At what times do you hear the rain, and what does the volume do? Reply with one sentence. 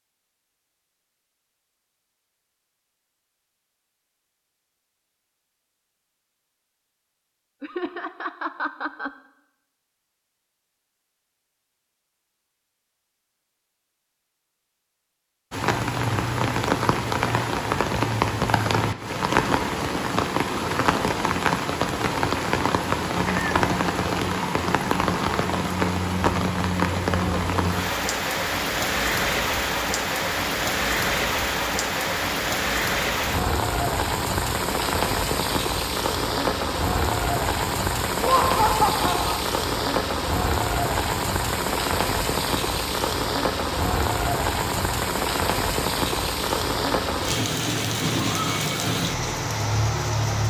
The rain can be heard from 15.5 to 50.4 s, at a steady volume.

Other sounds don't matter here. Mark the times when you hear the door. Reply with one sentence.
The door can't be heard in this clip.